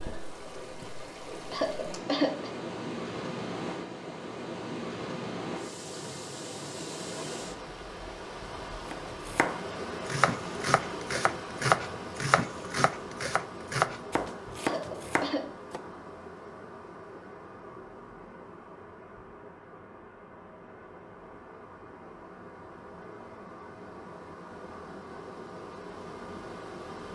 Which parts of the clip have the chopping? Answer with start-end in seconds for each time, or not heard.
8.9-15.8.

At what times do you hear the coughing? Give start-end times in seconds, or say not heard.
1.5-2.5, 14.6-15.4.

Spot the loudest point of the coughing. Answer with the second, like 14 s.
2 s.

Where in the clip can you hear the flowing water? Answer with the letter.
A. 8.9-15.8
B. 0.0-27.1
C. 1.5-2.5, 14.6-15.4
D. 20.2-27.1
B.